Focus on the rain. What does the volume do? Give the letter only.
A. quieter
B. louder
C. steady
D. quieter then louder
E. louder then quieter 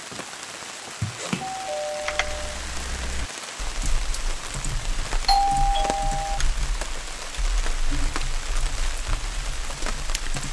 C.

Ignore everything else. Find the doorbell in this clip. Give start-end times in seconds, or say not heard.
1.3-2.6, 5.2-6.4.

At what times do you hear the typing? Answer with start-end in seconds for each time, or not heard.
2.0-10.4.